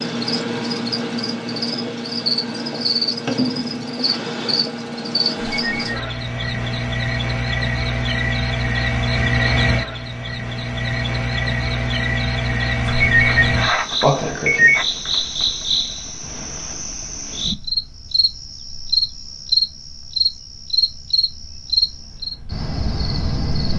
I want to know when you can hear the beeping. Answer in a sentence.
The beeping can be heard from 5.5 to 6.0 s and from 12.8 to 14.8 s.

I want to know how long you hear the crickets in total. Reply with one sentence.
You can hear the crickets for 24 seconds altogether.